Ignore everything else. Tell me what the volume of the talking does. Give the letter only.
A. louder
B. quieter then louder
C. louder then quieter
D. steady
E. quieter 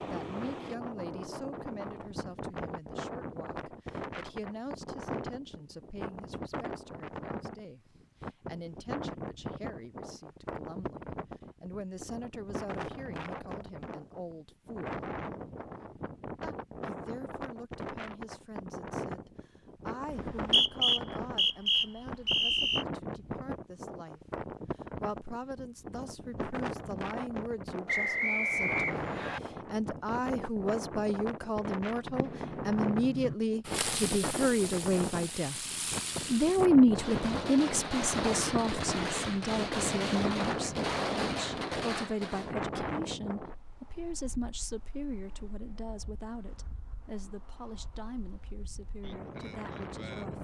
C.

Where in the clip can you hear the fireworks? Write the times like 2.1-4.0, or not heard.
32.0-42.5.